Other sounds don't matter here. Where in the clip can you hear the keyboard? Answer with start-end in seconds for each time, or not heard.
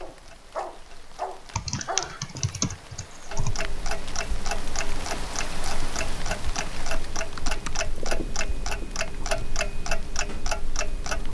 1.6-3.5, 6.3-7.8.